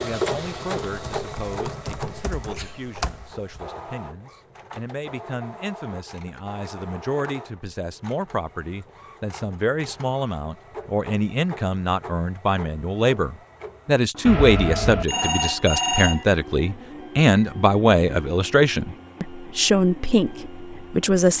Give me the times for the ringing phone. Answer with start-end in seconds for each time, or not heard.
14.2-16.2.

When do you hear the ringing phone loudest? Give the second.
16 s.